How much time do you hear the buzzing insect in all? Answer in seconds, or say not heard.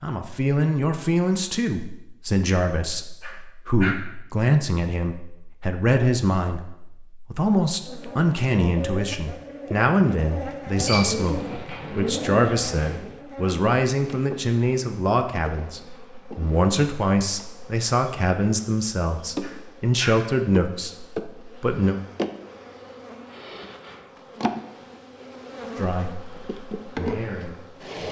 20 s.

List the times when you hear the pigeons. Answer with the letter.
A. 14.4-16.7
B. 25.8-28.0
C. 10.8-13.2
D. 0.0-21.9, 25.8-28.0
C.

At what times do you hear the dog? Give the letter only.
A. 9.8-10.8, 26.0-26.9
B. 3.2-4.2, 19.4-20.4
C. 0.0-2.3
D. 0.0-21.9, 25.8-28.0
B.